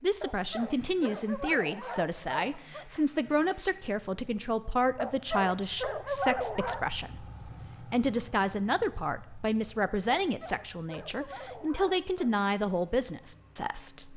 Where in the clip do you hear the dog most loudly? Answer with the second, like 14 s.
6 s.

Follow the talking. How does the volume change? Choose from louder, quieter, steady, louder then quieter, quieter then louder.
steady.